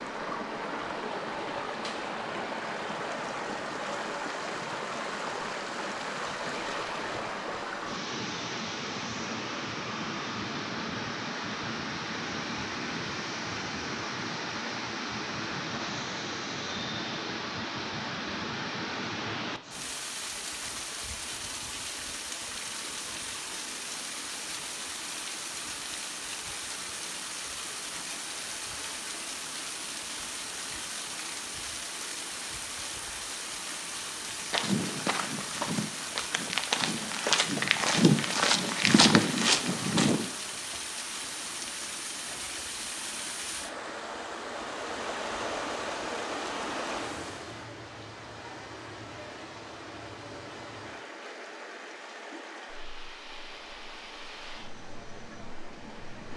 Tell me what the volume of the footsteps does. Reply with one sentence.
The volume of the footsteps goes up.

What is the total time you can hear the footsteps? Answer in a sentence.
You can hear the footsteps for 6 seconds altogether.